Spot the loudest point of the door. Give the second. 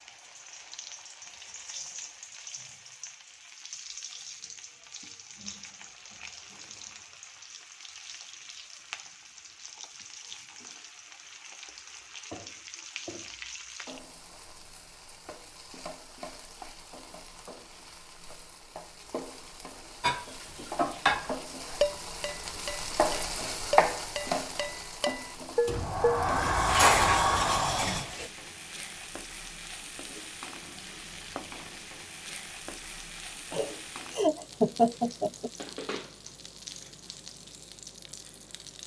27 s.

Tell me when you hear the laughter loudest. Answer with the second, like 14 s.
35 s.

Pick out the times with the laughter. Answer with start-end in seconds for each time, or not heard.
33.5-35.5.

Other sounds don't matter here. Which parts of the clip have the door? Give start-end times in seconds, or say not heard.
25.6-28.1.